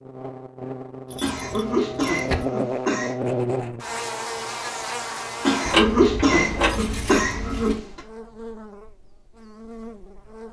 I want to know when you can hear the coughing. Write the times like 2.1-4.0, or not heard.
1.2-3.1, 5.5-8.0.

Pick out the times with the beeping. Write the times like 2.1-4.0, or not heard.
not heard.